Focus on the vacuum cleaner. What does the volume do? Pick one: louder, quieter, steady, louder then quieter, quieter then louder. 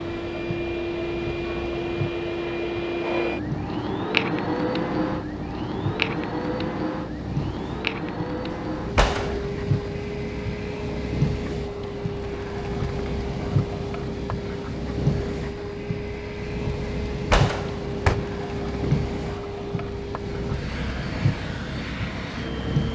quieter.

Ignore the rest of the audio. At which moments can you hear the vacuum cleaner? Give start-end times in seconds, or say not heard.
0.0-22.9.